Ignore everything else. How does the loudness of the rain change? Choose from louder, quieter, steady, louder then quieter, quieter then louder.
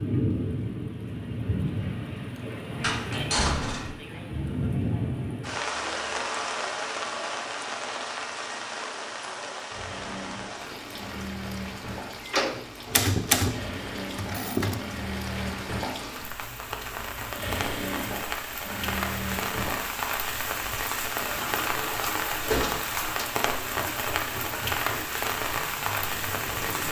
quieter then louder.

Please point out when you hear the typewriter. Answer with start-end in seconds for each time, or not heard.
12.8-14.8.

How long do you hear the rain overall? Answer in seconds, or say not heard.
27 s.